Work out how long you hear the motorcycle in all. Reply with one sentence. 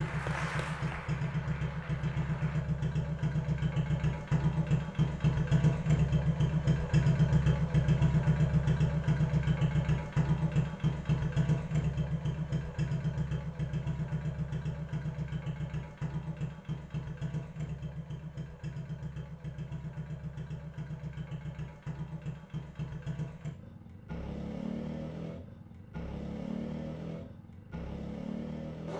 The motorcycle can be heard for 29 seconds in total.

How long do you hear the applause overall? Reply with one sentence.
You can hear the applause for 3 seconds altogether.